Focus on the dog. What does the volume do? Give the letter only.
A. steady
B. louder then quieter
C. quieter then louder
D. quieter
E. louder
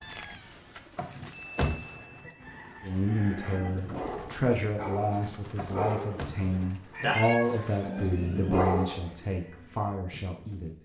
E.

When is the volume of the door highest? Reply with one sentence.
The loudest moment of the door is at 2 seconds.